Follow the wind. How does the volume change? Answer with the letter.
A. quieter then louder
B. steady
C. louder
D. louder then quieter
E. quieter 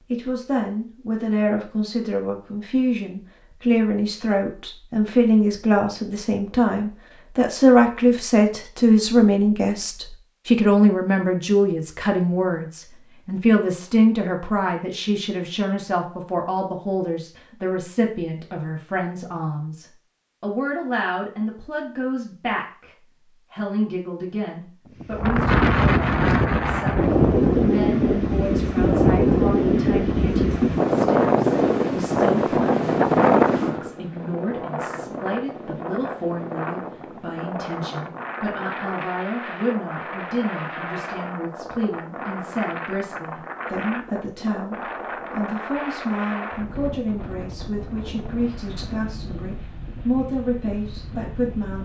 E.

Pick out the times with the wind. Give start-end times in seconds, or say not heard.
25.0-51.8.